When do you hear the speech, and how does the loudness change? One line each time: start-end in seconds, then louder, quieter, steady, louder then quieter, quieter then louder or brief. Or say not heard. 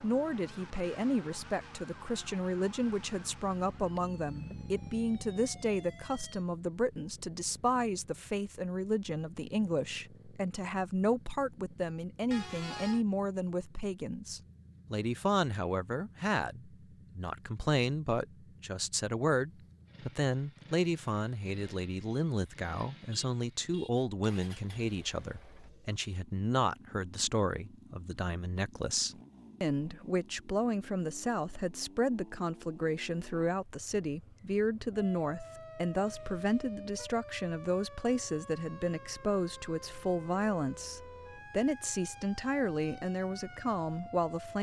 0.0-44.5 steady.